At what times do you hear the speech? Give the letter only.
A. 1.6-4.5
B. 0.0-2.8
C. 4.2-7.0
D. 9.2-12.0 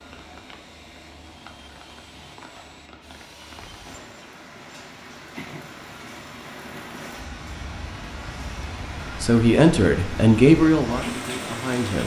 D.